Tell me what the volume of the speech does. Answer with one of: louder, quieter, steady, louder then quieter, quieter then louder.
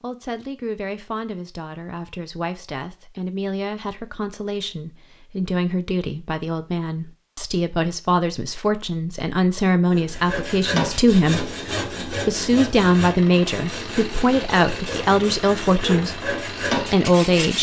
louder.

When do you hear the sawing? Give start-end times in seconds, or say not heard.
9.9-17.5.